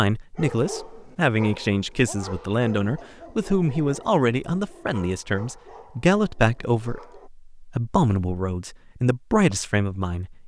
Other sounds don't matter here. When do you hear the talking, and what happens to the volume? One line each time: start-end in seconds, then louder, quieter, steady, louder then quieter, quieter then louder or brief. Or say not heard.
0.0-10.4 steady.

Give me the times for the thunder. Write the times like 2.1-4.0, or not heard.
not heard.